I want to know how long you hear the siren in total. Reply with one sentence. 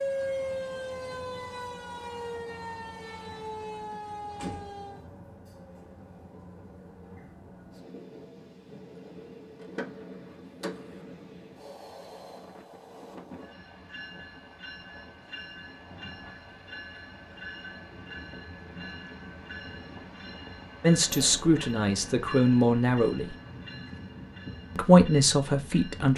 The siren can be heard for 5 seconds in total.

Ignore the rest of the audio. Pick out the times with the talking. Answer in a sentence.
You can hear the talking from 20.8 to 23.4 s and from 24.8 to 26.1 s.